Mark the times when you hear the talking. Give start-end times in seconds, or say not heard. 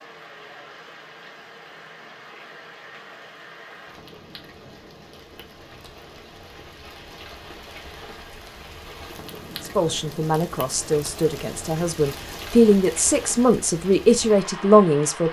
9.7-15.2.